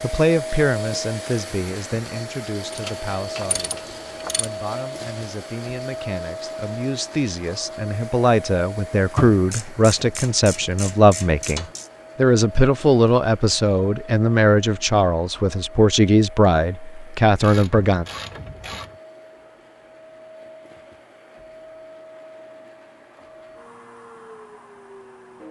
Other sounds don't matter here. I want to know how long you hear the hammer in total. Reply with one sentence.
You can't hear the hammer here.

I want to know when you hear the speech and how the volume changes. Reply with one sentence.
You can hear the speech from 0.0 to 18.1 s, getting louder.